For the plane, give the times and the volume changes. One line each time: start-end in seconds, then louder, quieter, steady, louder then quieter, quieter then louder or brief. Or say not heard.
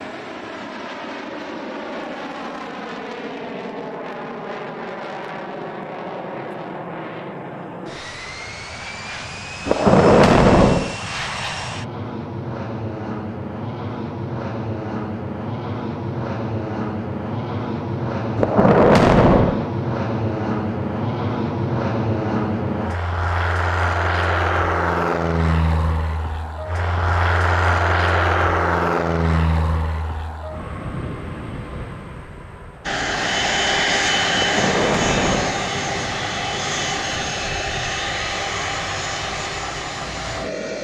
0.0-40.7 louder.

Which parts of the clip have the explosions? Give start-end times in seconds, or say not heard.
9.7-10.9, 18.4-19.7, 34.4-35.7.